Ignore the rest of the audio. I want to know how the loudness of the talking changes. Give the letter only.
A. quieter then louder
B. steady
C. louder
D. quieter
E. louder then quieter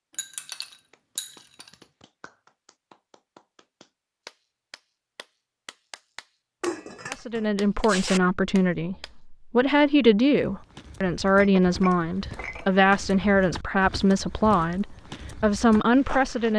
B.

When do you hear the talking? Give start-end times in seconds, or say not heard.
7.1-16.5.